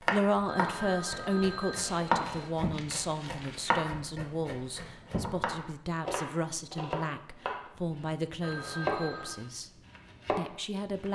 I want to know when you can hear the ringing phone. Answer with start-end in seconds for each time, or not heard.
0.5-2.5, 8.4-9.4.